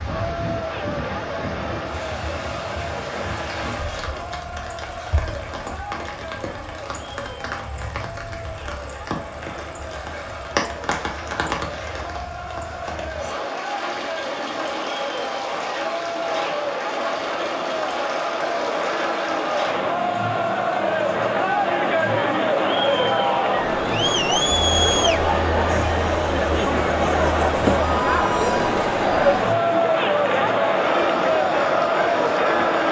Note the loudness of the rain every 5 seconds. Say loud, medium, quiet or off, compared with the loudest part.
loud, medium, loud, loud, loud, loud, loud.